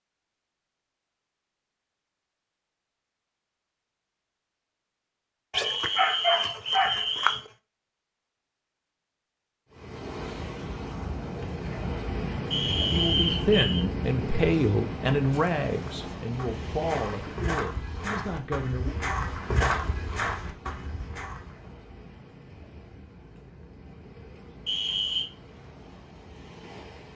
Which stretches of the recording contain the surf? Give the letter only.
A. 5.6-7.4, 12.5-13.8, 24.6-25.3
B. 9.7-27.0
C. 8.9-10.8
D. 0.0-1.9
B.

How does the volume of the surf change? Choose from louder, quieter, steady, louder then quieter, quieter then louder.
quieter.